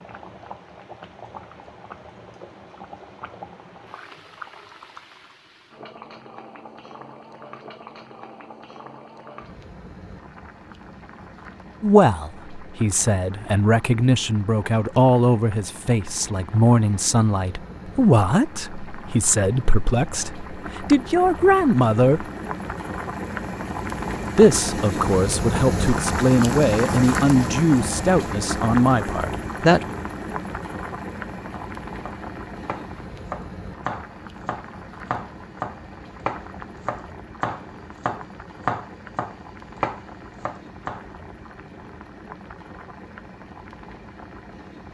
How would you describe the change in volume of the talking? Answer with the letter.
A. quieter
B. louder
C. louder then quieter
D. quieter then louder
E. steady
E.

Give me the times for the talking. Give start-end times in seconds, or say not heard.
11.8-22.2, 24.4-29.9.